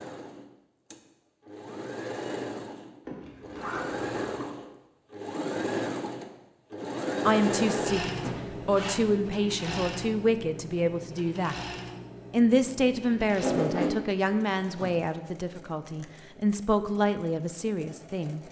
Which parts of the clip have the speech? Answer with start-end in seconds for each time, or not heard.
7.2-11.6, 12.3-18.4.